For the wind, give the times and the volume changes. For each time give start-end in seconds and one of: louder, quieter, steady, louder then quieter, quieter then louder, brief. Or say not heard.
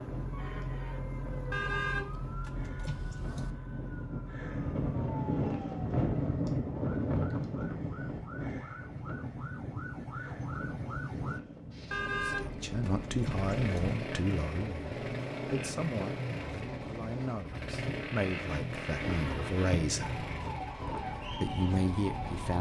0.0-22.5 louder then quieter.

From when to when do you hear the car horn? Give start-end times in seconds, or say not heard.
1.5-3.5, 11.9-13.9.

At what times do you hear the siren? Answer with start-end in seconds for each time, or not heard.
0.0-11.4, 20.0-22.5.